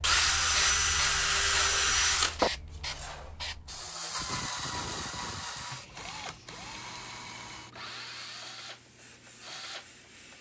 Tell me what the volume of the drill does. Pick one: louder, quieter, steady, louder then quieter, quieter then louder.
quieter.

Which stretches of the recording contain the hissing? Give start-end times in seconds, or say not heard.
0.0-10.3.